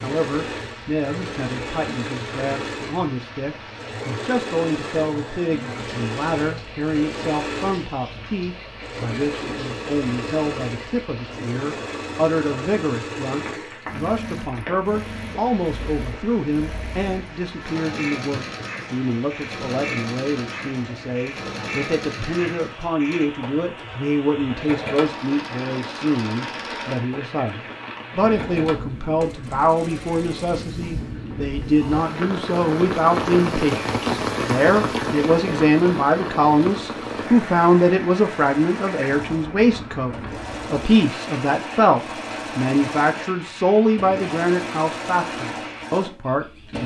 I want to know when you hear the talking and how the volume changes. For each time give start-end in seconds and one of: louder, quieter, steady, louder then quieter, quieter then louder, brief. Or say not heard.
0.0-46.8 louder.